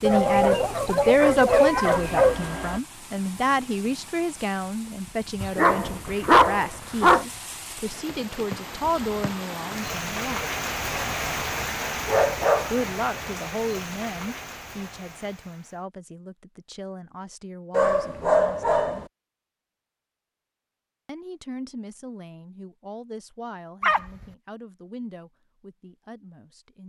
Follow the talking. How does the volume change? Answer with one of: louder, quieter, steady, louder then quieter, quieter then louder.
quieter.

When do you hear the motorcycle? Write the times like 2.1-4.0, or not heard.
not heard.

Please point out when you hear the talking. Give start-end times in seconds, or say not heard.
0.0-10.4, 12.7-18.9, 21.1-26.8.